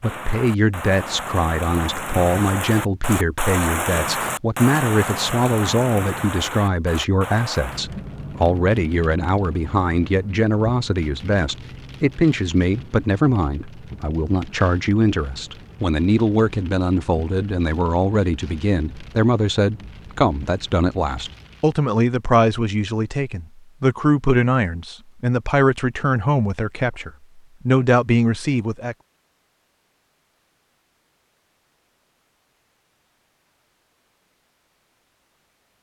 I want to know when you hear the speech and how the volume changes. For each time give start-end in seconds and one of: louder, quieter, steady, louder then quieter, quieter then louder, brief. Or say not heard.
0.0-28.9 steady.